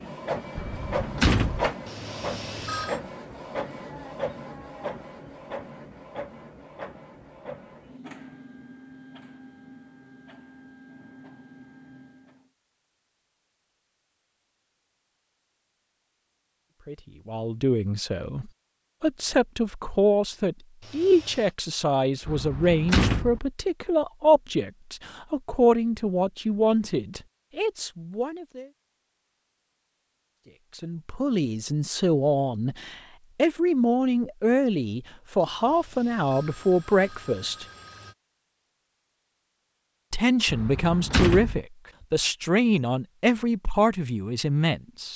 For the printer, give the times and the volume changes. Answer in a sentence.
You can hear the printer from 0.0 to 12.5 s, getting quieter.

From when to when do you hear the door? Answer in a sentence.
You can hear the door from 0.6 to 1.7 s, from 22.2 to 23.4 s and from 40.5 to 41.6 s.